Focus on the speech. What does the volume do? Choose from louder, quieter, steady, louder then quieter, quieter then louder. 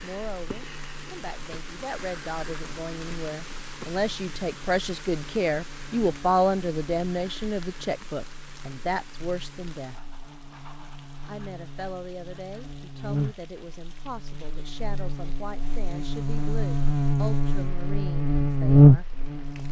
louder then quieter.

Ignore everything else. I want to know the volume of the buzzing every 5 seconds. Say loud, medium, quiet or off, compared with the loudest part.
quiet, quiet, quiet, loud.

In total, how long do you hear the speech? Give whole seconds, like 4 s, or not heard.
18 s.